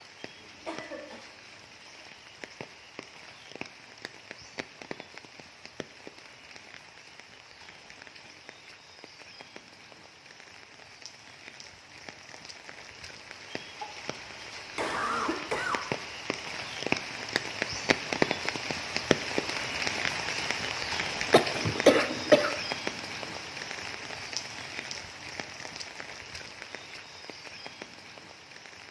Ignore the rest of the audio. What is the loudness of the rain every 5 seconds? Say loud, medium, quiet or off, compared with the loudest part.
quiet, quiet, quiet, loud, loud, quiet.